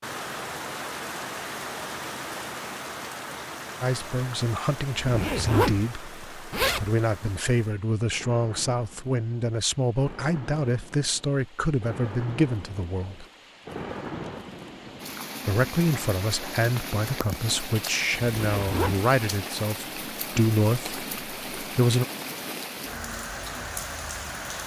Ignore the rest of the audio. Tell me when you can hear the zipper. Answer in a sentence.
You can hear the zipper from 5.0 to 5.8 s, from 6.5 to 6.9 s and from 18.4 to 19.1 s.